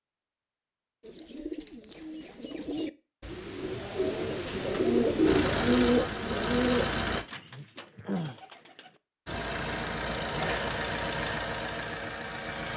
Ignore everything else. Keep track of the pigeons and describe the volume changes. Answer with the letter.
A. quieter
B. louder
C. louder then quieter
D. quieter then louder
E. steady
C.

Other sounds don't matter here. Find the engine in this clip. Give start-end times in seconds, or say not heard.
5.2-7.2, 9.2-12.7.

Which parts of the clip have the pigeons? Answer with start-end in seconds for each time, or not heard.
1.0-9.0.